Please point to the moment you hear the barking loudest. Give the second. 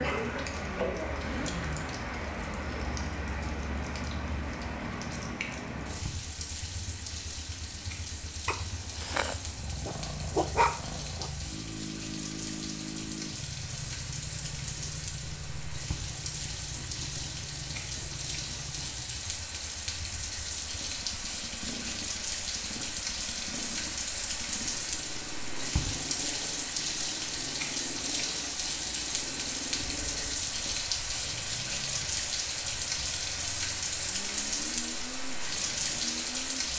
11 s.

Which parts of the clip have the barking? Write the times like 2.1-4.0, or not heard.
8.4-11.3.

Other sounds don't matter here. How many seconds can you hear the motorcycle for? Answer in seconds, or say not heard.
37 s.